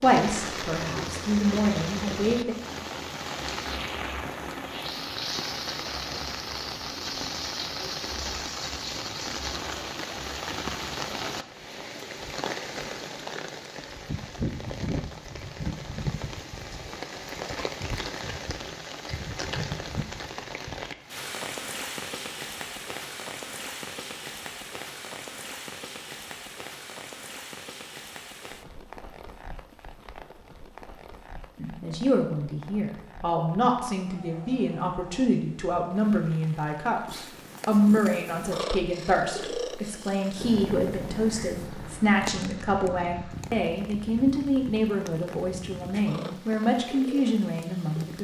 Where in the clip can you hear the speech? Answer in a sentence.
You can hear the speech from 0.0 to 2.5 s and from 31.6 to 48.1 s.